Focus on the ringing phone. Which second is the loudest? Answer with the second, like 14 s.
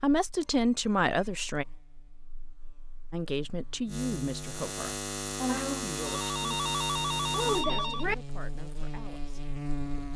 8 s.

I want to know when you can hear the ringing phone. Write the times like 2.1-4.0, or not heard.
0.5-1.7, 5.5-8.2.